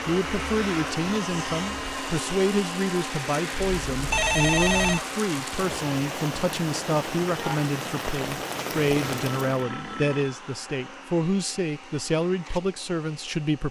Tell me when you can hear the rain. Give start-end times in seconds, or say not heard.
0.1-9.7.